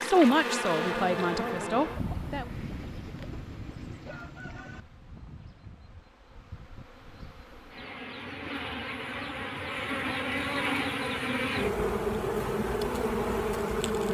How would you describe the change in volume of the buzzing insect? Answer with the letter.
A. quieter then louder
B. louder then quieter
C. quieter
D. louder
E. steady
A.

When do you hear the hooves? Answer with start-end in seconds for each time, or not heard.
not heard.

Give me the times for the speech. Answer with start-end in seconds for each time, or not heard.
0.0-2.5.